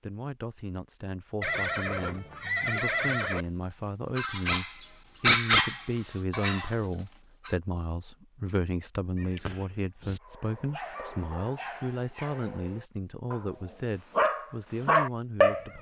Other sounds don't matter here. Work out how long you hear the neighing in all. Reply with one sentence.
You can hear the neighing for 3 seconds altogether.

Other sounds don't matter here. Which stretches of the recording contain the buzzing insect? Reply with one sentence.
The buzzing insect can't be heard in this clip.